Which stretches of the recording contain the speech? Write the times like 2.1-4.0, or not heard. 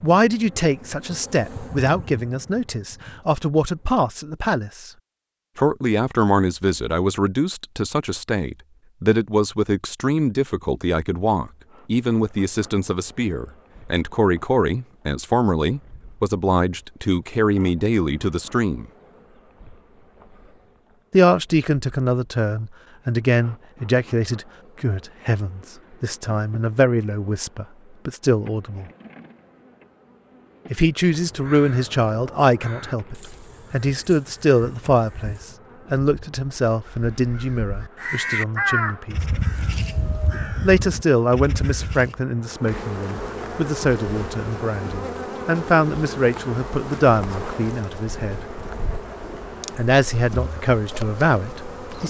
0.0-4.9, 5.5-18.9, 21.1-28.9, 30.7-39.2, 40.6-48.4, 49.8-52.0.